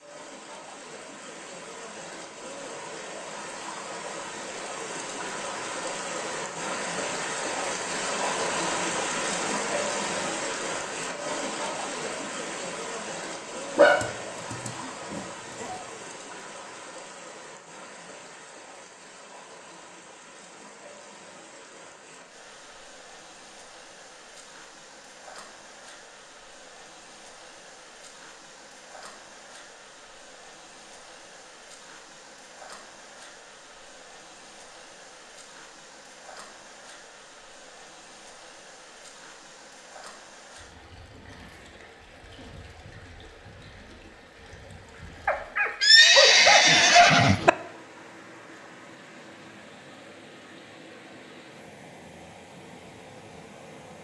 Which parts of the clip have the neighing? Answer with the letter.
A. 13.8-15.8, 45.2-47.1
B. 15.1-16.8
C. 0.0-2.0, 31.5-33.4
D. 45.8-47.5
D.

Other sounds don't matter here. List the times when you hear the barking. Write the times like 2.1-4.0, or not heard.
13.8-15.8, 45.2-47.1.